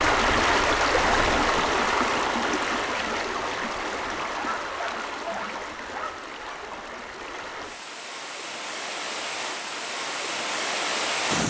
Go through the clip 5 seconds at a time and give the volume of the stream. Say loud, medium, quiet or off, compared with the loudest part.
loud, medium, loud.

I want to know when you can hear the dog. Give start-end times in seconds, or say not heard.
4.2-7.0.